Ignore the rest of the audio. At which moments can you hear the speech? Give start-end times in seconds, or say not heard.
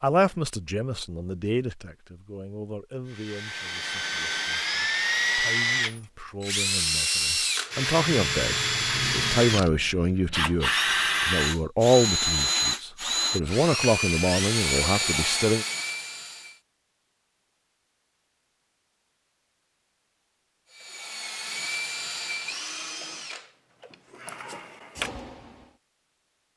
0.0-15.7.